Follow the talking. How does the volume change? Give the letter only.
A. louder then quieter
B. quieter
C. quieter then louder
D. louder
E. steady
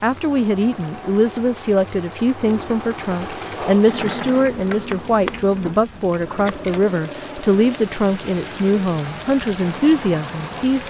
E.